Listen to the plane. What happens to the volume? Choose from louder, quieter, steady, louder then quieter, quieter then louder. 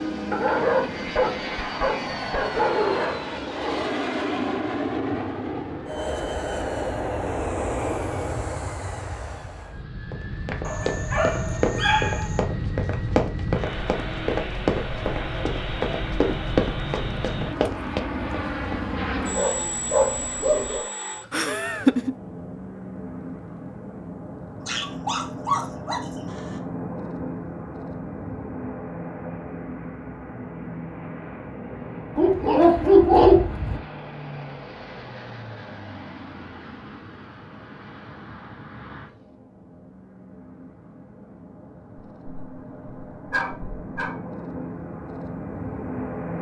quieter.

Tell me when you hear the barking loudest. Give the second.
33 s.